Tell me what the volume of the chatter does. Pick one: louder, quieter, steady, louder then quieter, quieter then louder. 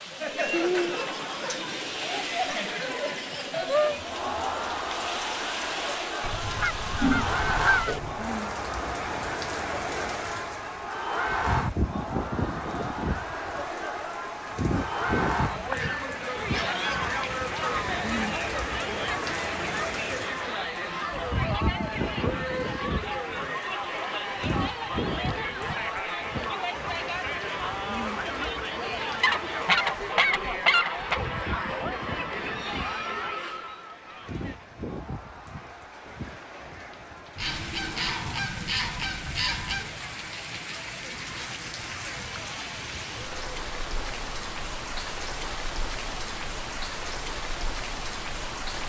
quieter.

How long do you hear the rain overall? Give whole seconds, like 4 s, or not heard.
49 s.